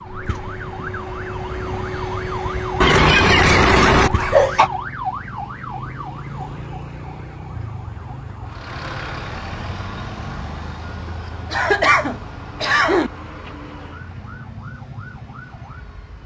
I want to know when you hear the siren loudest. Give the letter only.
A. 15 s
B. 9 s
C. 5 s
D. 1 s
C.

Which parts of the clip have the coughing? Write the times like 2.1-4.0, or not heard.
2.8-4.7, 11.5-13.1.